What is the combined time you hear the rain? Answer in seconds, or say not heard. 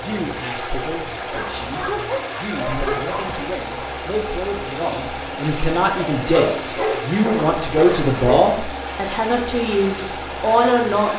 not heard.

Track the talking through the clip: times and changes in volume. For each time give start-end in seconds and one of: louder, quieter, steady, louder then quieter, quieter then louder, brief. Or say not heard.
0.0-11.1 louder.